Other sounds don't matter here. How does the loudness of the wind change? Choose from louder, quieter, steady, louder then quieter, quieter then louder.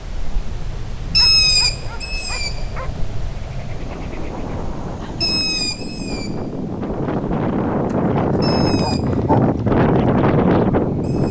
louder.